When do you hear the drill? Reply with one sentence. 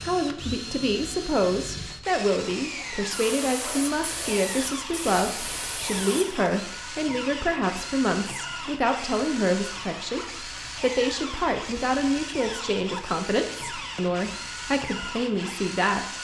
You can hear the drill from 0.0 to 16.1 s.